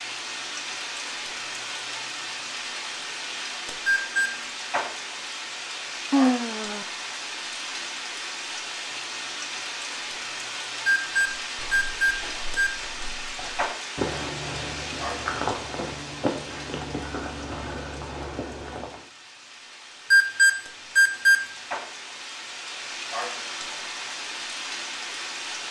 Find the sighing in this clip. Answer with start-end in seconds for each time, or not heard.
6.1-6.8.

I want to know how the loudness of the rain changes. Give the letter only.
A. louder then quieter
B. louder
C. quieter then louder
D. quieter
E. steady
C.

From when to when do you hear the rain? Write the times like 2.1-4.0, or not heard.
0.0-25.6.